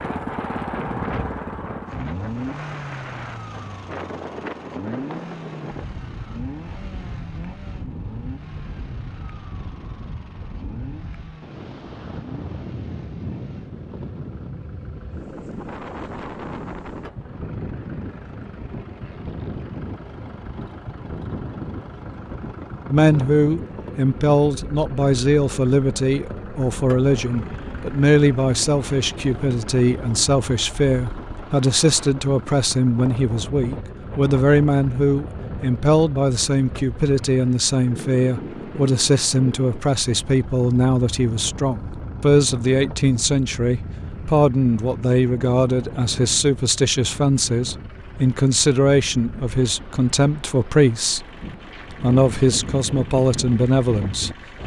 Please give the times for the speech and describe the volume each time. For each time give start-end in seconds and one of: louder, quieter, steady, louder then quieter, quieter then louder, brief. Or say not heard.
22.9-51.2 steady
52.0-54.3 brief.